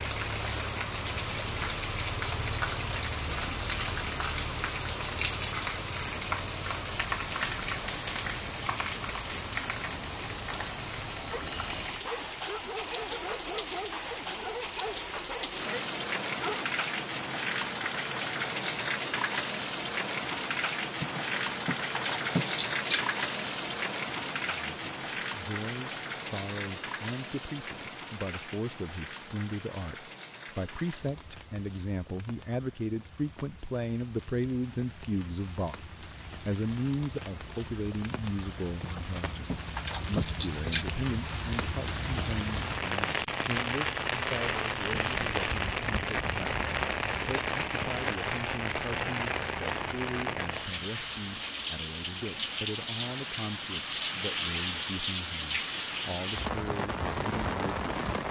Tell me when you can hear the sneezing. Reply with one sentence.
You can't hear the sneezing here.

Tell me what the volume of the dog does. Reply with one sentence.
The loudness of the dog stays about the same.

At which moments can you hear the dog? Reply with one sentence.
You can hear the dog from 11.3 to 16.8 s.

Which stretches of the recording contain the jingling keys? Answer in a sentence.
You can hear the jingling keys from 21.0 to 23.0 s and from 38.8 to 40.9 s.